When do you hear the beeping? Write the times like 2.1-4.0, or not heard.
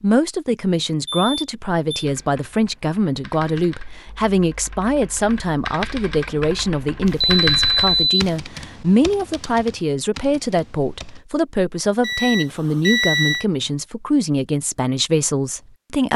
1.1-2.0, 7.0-8.3, 12.0-13.4.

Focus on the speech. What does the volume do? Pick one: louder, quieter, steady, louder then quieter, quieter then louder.
steady.